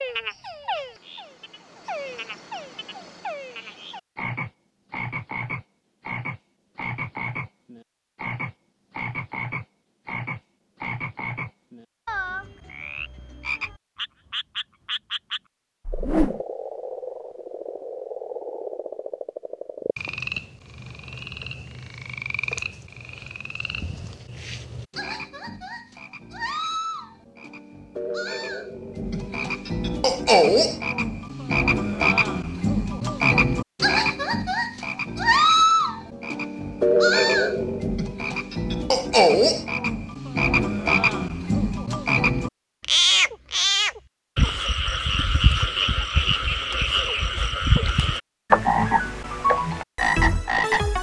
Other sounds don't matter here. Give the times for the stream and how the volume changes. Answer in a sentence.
The stream can't be heard in this clip.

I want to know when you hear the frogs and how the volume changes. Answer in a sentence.
You can hear the frogs from 0.0 to 50.9 s, getting louder.